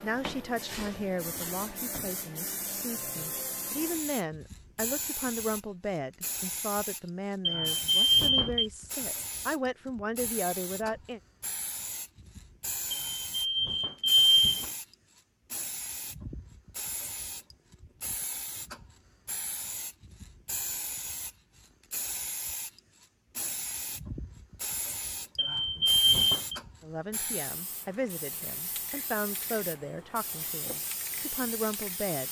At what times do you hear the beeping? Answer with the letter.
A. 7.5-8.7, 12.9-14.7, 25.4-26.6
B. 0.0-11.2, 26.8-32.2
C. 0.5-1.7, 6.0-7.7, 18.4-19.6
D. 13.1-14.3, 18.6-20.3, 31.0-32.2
A.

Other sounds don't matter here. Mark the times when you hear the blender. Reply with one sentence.
You can't hear the blender here.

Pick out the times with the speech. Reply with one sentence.
You can hear the speech from 0.0 to 11.2 s and from 26.8 to 32.2 s.